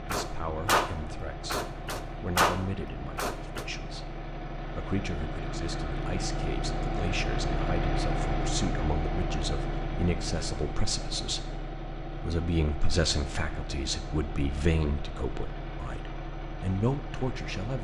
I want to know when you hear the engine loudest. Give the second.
8 s.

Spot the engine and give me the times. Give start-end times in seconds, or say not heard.
0.0-17.8.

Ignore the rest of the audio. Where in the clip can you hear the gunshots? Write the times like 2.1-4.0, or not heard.
0.1-3.6.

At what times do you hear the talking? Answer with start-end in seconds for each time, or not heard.
0.1-17.8.